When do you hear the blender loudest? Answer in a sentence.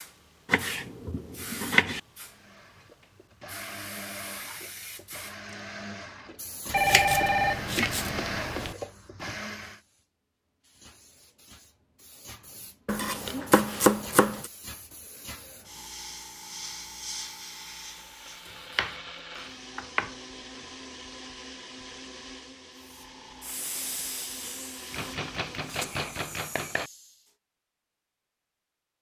The volume of the blender peaks at 8 seconds.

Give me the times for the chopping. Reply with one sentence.
The chopping can be heard from 0.5 to 2.0 s, from 6.8 to 8.2 s, from 12.8 to 14.5 s, from 18.4 to 20.1 s and from 24.9 to 26.9 s.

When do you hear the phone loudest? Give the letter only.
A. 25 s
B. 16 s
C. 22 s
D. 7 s
D.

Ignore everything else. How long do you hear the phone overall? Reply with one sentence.
You can hear the phone for 2 seconds altogether.